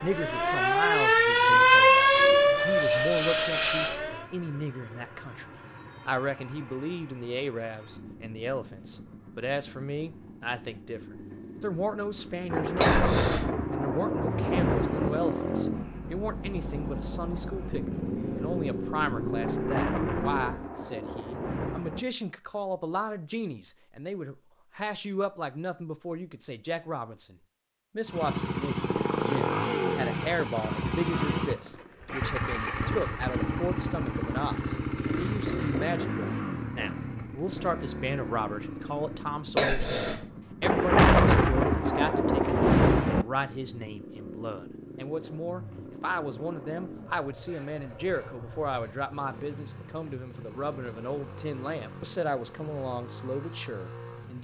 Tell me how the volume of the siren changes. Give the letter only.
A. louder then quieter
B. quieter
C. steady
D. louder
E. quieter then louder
A.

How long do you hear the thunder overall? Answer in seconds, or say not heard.
8 s.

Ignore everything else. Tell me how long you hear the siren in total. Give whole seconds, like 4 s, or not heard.
4 s.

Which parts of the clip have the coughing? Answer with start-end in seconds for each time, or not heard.
12.8-13.4, 39.5-40.1.